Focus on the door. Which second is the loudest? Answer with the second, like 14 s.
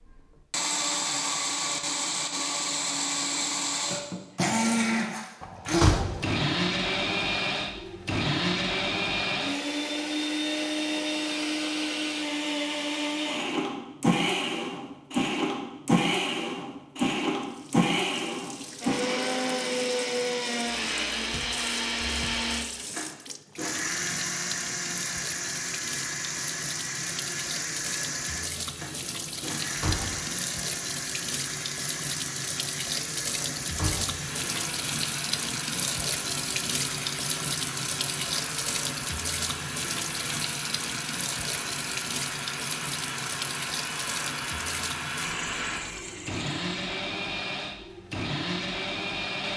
6 s.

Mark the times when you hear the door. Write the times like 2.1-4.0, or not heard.
5.4-6.2, 29.6-30.3, 33.6-34.2.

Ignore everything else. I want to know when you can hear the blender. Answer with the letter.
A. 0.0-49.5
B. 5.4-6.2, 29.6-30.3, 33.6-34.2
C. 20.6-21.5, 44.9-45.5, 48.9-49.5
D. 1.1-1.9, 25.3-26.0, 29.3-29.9
A.